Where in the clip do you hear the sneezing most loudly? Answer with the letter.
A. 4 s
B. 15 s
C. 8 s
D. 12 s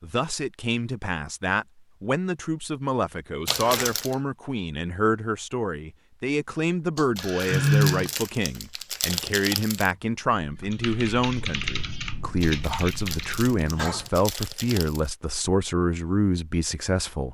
C.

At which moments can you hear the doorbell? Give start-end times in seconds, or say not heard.
not heard.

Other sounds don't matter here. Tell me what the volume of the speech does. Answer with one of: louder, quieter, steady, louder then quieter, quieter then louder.
steady.